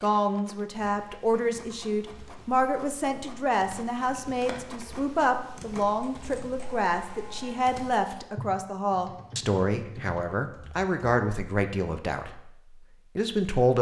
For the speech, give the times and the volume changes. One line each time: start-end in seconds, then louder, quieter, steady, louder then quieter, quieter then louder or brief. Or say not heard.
0.0-12.5 steady
13.2-13.7 brief.